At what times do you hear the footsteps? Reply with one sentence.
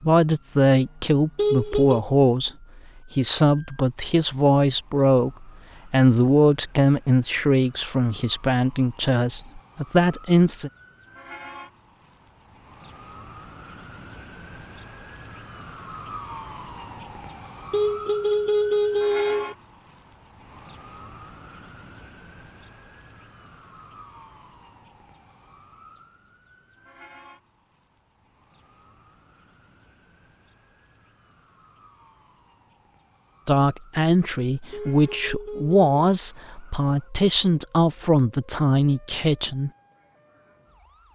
The footsteps can't be heard in this clip.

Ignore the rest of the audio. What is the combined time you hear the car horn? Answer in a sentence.
You can hear the car horn for 4 seconds altogether.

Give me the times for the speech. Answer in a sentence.
You can hear the speech from 0.0 to 2.5 s, from 3.1 to 10.7 s and from 33.5 to 39.7 s.